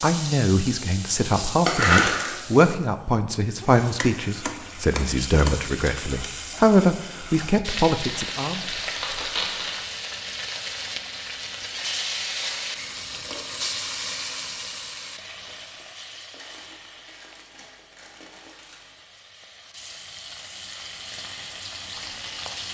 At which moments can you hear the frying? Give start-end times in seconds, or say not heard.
0.0-22.6.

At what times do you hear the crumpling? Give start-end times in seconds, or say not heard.
1.6-2.4, 8.0-9.8, 16.4-19.0.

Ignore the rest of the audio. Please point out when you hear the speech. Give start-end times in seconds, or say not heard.
0.0-8.6.